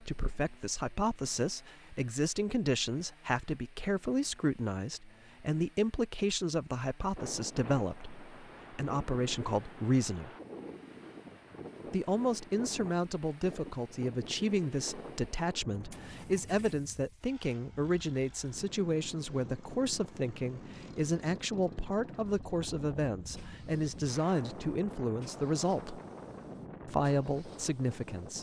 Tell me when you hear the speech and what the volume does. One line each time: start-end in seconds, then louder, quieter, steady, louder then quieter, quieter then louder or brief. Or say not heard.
0.0-10.3 steady
11.9-26.0 steady
26.9-28.3 brief.